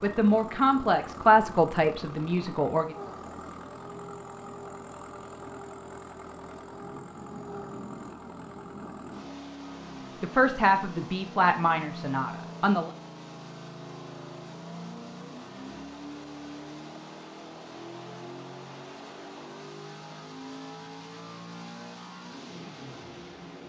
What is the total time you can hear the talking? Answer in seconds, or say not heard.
6 s.